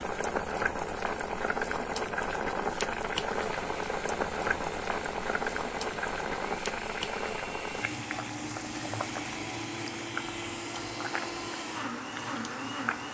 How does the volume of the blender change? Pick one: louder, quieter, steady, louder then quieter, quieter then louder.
louder.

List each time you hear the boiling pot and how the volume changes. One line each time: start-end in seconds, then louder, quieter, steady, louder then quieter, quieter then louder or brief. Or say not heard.
0.0-13.0 quieter.